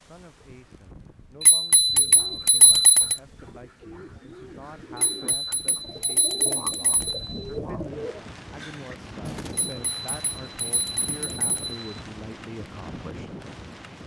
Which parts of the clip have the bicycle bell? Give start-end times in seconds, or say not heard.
1.4-3.1, 5.0-7.2, 9.5-11.8.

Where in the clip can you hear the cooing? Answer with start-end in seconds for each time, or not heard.
1.8-9.8.